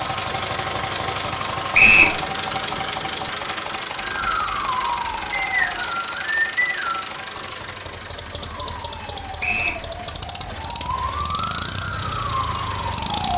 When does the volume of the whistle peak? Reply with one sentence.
The volume of the whistle peaks at 2 seconds.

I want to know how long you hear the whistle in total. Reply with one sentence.
The whistle can be heard for 3 seconds in total.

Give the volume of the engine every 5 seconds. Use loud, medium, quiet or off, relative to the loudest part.
loud, medium, medium.